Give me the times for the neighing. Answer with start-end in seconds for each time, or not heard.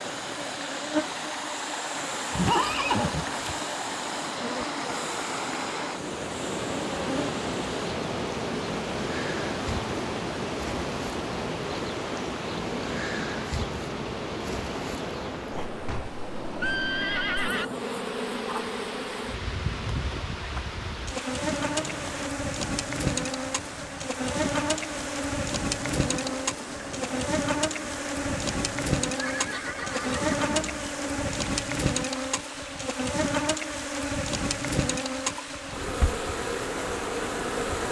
2.4-3.5, 15.8-17.7, 29.1-30.9.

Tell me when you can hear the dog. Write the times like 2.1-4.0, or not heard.
not heard.